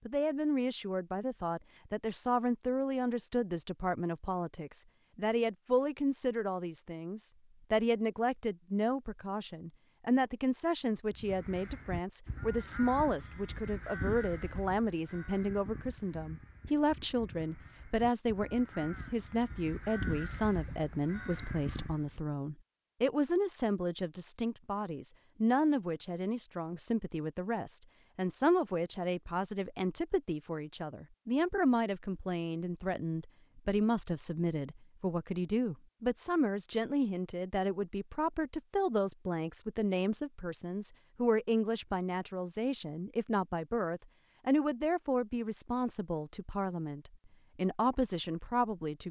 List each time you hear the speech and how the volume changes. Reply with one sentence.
The speech can be heard from 0.1 to 49.0 s, at a steady volume.